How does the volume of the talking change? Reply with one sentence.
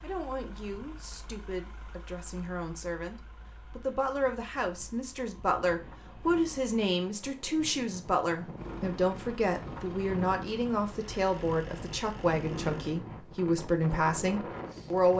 The loudness of the talking goes up.